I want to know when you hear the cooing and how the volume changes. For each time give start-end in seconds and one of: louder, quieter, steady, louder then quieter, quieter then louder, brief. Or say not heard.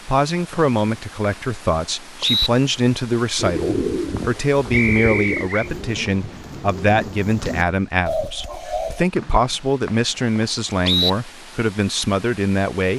3.4-9.1 quieter then louder.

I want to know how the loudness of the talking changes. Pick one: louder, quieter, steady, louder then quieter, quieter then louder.
steady.